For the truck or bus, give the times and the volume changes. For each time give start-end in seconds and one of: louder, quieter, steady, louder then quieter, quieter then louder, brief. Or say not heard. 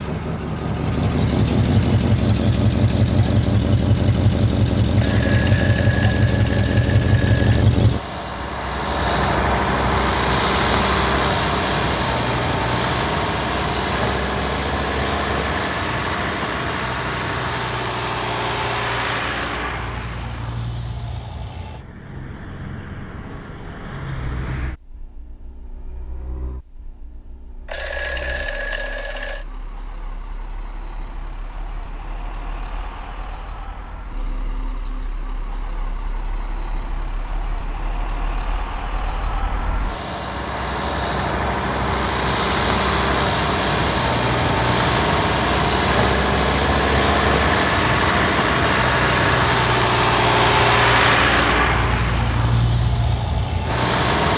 0.0-54.3 quieter then louder.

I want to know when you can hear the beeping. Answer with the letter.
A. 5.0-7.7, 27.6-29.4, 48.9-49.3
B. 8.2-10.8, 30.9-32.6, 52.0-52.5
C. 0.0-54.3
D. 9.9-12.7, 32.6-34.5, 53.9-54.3
A.